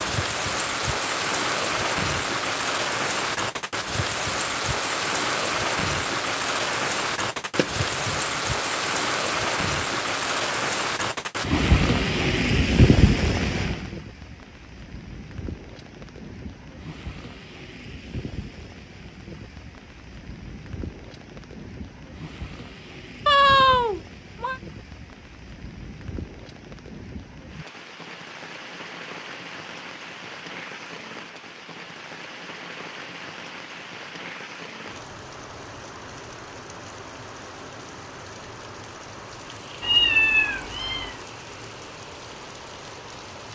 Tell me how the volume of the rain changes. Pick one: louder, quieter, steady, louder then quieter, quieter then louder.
quieter.